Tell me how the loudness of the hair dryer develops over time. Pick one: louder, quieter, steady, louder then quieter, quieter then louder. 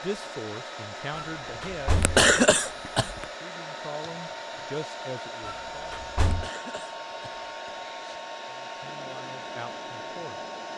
steady.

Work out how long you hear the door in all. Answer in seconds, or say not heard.
2 s.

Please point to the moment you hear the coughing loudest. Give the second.
2 s.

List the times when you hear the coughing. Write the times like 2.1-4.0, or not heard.
1.9-3.2, 6.2-8.2.